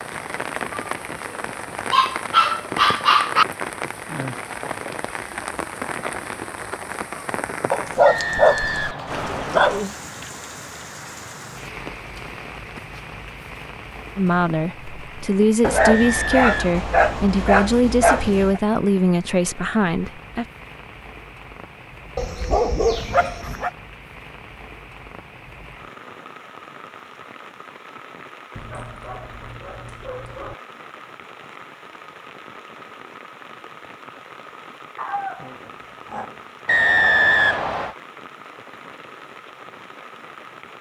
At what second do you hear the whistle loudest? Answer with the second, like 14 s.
37 s.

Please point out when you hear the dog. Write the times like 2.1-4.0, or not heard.
1.9-3.5, 7.7-10.2, 15.6-18.6, 22.1-23.7, 28.6-30.6, 35.0-36.4.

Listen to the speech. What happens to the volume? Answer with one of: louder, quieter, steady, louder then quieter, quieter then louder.
steady.